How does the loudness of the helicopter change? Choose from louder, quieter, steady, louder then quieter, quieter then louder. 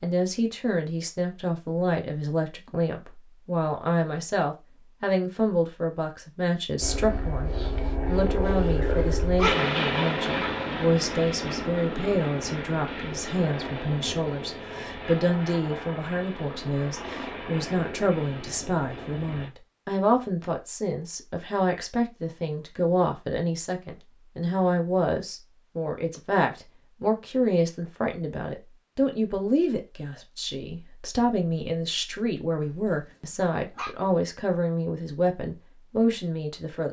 quieter.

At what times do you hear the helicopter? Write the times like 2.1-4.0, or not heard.
6.8-19.5.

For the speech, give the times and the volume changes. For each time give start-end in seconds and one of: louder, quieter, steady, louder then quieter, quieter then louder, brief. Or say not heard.
0.0-36.8 steady.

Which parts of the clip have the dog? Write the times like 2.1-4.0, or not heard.
8.9-9.6, 33.3-34.0.